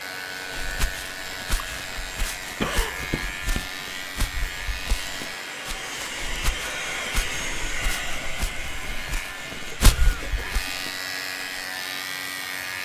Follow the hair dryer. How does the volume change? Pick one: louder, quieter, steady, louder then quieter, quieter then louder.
louder then quieter.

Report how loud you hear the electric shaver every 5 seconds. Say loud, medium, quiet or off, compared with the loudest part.
loud, medium, loud.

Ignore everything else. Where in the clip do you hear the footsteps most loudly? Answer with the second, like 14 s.
10 s.